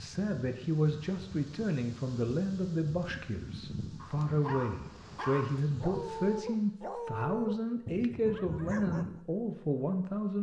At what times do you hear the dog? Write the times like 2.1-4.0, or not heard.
4.0-9.2.